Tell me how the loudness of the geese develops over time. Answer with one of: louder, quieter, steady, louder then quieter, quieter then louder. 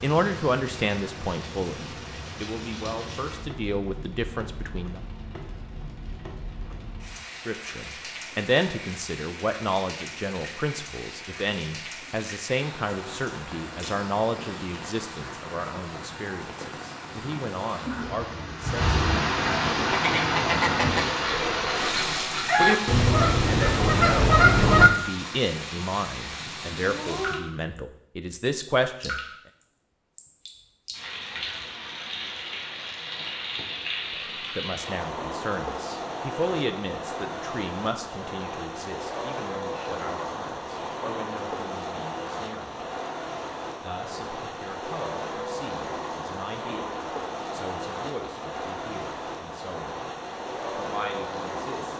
quieter then louder.